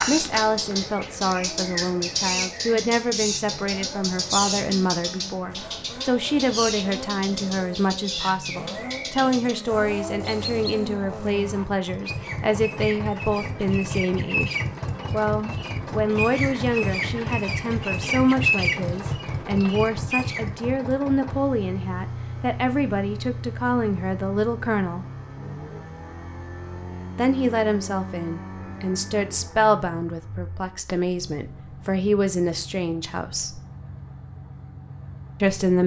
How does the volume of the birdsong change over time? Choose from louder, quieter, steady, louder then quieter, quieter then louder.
quieter then louder.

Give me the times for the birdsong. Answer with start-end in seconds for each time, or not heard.
0.0-20.5.